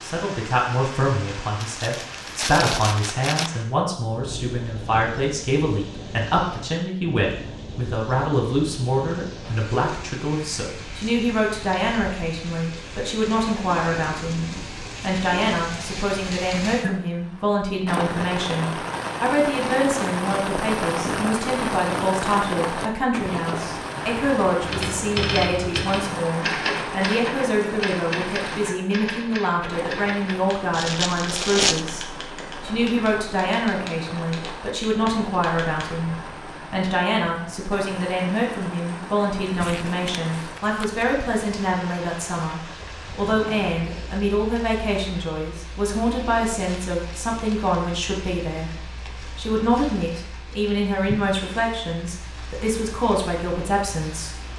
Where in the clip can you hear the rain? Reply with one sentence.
You can hear the rain from 0.0 to 54.5 s.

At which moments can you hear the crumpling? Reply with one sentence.
The crumpling can be heard from 1.6 to 3.5 s, from 30.7 to 31.9 s and from 39.4 to 41.0 s.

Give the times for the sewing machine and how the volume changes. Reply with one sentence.
The sewing machine can't be heard in this clip.